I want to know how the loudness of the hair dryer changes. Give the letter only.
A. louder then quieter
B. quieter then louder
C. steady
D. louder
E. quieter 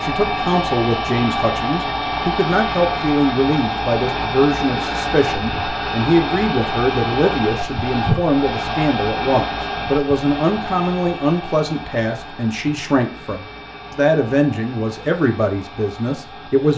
E.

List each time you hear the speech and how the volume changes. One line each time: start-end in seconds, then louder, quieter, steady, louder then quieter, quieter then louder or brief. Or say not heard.
0.0-16.7 steady.